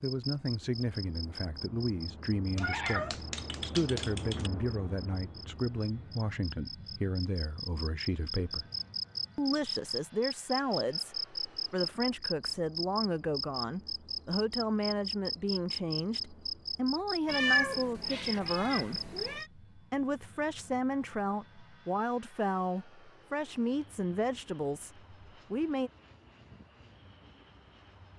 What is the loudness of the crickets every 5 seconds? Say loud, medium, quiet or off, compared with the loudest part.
medium, loud, loud, loud, off, off.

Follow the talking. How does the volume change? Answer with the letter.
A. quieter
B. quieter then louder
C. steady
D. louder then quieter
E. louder
C.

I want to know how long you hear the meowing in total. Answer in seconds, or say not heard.
4 s.